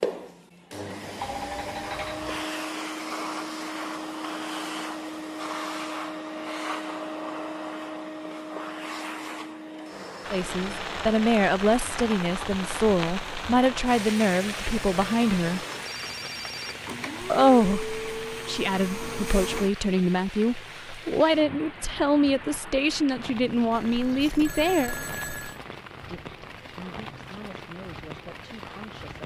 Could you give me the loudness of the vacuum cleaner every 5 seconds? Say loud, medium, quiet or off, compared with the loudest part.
loud, loud, medium, loud, off, off.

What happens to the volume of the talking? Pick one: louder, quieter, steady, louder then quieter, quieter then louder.
quieter.